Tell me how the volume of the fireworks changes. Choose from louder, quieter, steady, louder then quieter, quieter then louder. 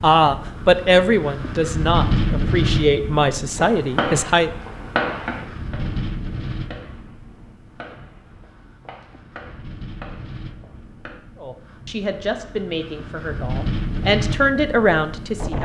quieter.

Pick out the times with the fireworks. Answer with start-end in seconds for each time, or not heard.
3.5-11.2.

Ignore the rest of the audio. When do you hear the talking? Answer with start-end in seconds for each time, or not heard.
0.0-4.5, 11.4-15.5.